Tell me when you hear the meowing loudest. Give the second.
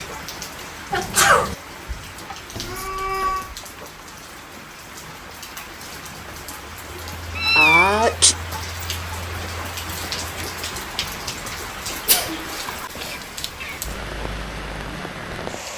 8 s.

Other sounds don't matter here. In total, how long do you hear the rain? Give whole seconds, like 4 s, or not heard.
16 s.